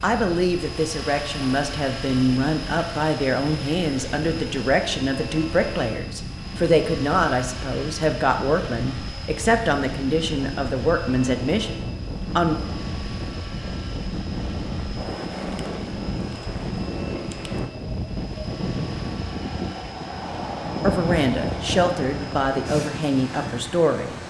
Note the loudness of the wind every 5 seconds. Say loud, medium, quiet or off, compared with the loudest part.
medium, medium, loud, loud, loud.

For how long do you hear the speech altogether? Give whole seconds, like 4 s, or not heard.
16 s.